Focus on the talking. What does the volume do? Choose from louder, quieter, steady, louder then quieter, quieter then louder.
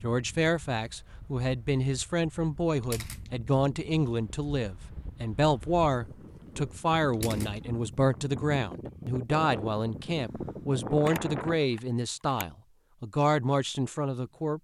steady.